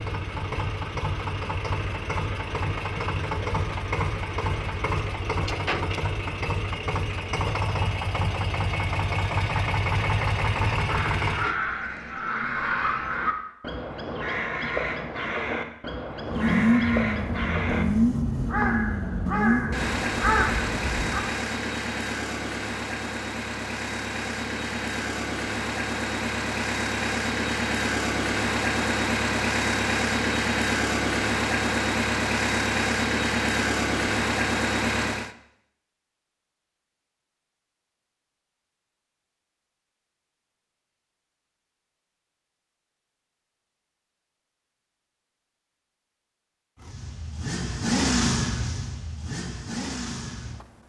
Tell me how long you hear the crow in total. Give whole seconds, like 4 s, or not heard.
10 s.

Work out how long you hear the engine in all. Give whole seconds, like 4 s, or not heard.
35 s.